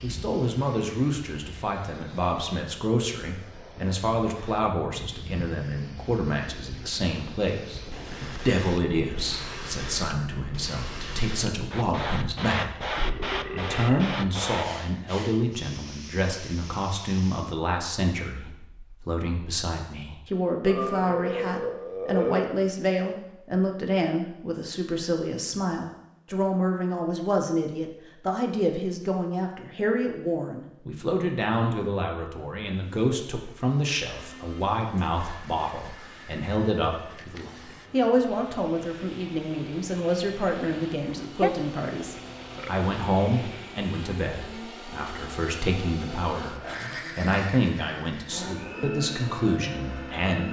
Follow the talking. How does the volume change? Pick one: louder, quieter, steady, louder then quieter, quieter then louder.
steady.